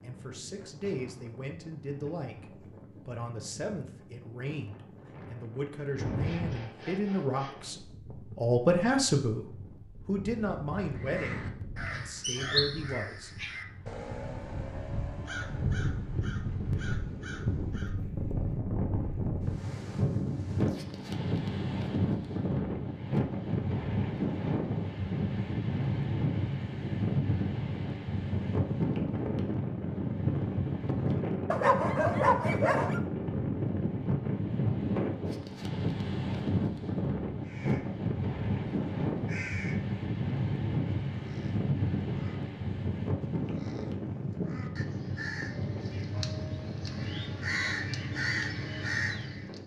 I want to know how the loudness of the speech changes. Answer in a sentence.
The loudness of the speech goes up, then down.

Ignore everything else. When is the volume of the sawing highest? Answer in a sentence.
The loudest moment of the sawing is at 6 seconds.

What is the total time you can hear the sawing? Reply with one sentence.
The sawing can be heard for 2 seconds in total.